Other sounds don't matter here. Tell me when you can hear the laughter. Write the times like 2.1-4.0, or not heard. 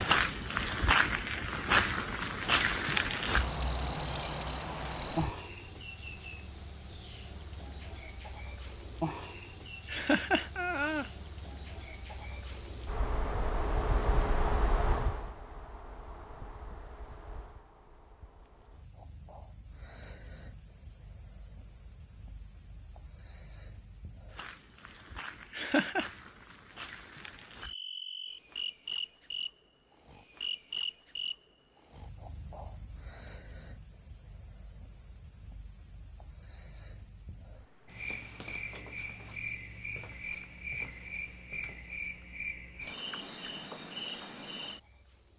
9.8-11.1, 25.5-26.1.